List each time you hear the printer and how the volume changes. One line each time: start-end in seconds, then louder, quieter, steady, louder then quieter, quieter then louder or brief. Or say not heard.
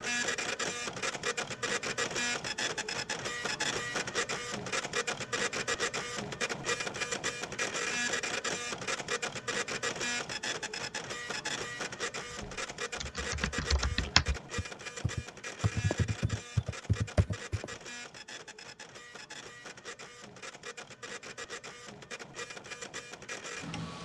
0.0-23.9 quieter.